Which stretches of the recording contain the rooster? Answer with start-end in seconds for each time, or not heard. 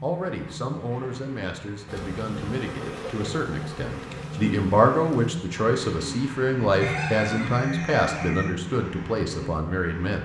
6.8-8.5.